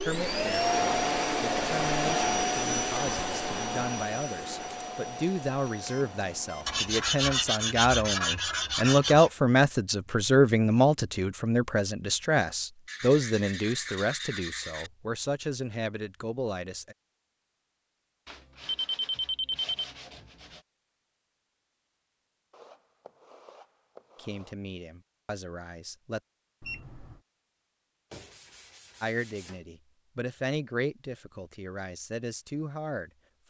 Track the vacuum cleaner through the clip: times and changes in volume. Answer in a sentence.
You can hear the vacuum cleaner from 0.0 to 7.5 s, getting quieter.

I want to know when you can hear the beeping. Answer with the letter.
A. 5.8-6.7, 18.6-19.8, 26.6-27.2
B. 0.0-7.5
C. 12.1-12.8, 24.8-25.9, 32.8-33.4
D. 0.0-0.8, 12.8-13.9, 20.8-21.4
A.